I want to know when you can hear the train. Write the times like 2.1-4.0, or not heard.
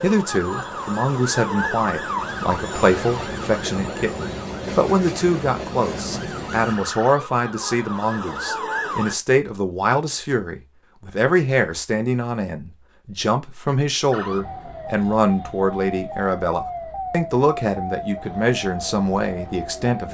0.1-7.0.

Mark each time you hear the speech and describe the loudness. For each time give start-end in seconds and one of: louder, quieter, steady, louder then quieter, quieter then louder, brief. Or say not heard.
0.0-20.1 steady.